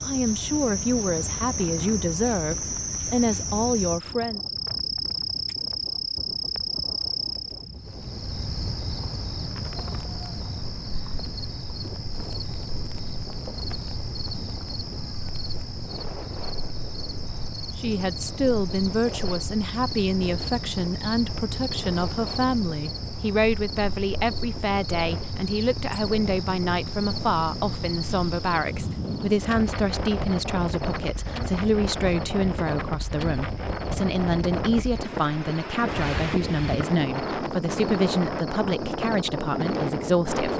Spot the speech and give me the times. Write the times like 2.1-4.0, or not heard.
0.0-4.4, 17.8-40.5.